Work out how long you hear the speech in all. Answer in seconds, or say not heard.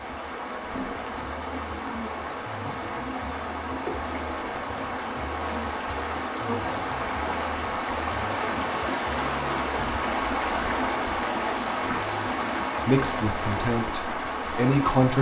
2 s.